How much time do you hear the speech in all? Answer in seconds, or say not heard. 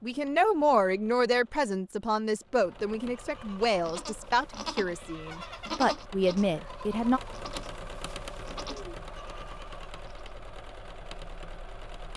7 s.